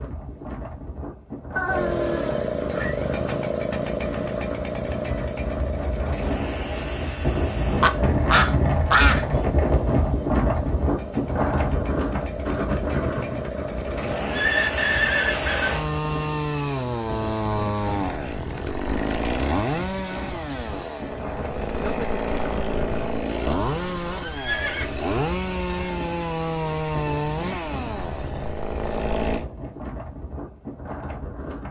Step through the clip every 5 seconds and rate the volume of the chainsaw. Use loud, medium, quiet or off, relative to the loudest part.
loud, medium, medium, loud, loud, loud, off.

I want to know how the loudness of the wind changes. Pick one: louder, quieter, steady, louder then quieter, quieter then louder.
louder then quieter.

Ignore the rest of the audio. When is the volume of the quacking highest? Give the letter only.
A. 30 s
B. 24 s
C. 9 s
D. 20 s
C.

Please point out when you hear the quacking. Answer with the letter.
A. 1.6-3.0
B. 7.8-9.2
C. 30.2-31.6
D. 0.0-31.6
B.